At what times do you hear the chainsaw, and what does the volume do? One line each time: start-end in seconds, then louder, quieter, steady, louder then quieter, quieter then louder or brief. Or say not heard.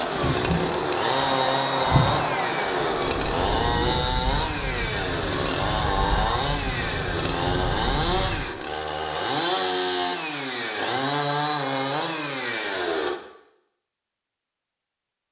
0.0-13.2 steady.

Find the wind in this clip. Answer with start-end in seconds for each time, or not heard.
0.0-8.5.